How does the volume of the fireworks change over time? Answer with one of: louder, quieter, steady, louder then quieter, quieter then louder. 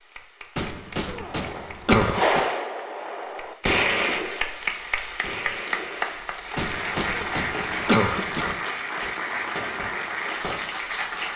quieter.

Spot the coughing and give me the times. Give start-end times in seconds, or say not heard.
0.6-2.5, 6.5-8.6.